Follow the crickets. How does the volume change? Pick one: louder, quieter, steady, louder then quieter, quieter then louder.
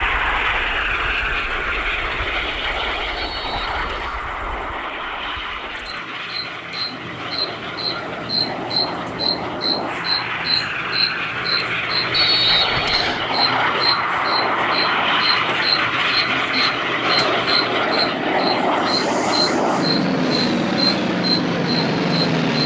louder.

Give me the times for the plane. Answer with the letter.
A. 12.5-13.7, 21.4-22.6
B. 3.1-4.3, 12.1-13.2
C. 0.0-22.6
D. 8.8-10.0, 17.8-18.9
C.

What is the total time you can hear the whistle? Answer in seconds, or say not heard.
2 s.